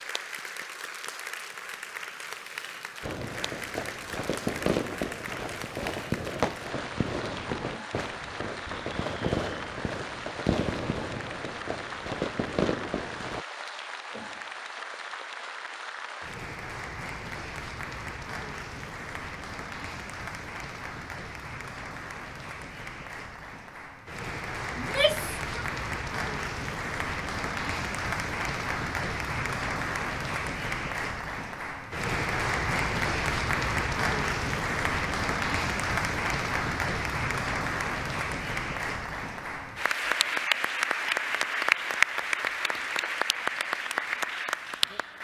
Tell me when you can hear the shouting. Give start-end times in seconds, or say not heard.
24.8-25.6.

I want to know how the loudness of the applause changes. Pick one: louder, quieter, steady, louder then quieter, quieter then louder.
louder.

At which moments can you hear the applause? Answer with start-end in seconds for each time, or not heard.
0.0-45.1.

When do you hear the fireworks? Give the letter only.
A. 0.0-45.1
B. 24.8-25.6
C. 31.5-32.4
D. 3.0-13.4
D.